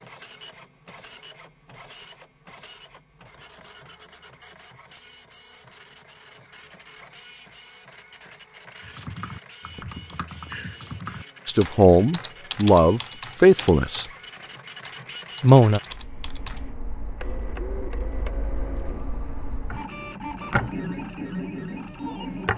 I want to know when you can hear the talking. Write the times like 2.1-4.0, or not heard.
11.4-14.1, 15.4-15.8.